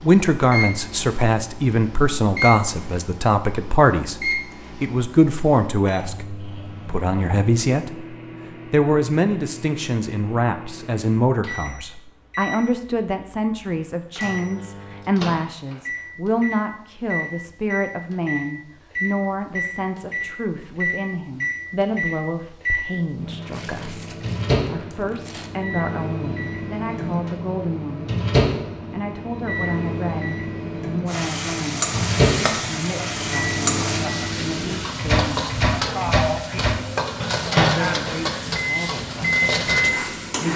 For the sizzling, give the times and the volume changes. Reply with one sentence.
You can hear the sizzling from 31.1 to 40.5 s, at a steady volume.